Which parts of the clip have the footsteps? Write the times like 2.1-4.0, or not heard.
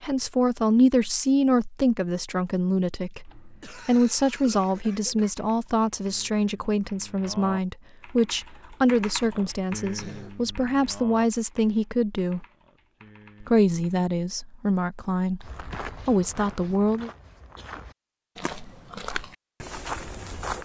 15.4-20.6.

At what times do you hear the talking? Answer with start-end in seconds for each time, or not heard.
0.0-12.4, 13.4-17.1.